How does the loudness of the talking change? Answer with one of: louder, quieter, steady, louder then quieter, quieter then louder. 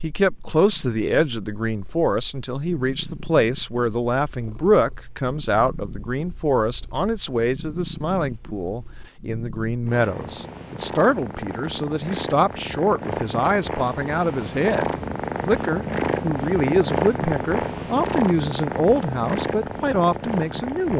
steady.